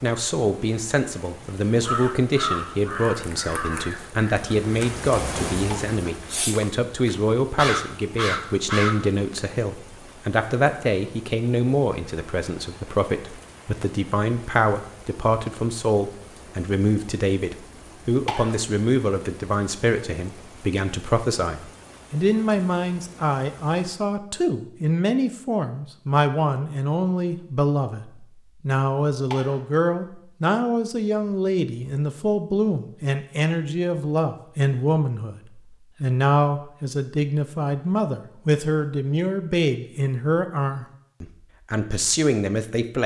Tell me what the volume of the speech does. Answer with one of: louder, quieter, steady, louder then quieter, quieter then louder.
steady.